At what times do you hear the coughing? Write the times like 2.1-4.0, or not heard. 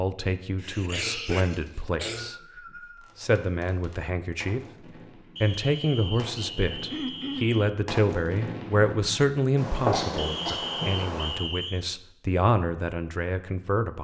0.6-2.4, 6.9-7.6, 9.9-10.7.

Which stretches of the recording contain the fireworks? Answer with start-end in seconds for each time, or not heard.
3.0-11.4.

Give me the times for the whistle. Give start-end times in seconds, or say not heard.
1.6-3.1, 5.3-7.8, 10.2-11.8.